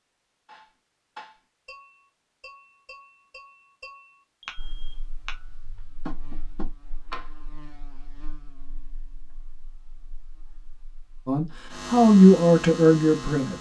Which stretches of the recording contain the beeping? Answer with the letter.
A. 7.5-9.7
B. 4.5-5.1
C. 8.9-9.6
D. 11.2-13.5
B.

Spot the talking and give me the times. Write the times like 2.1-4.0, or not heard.
11.2-13.5.